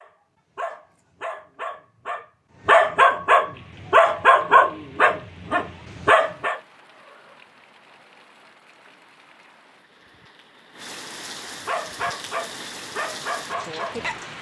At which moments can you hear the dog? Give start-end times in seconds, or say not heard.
0.0-6.6, 11.7-14.2.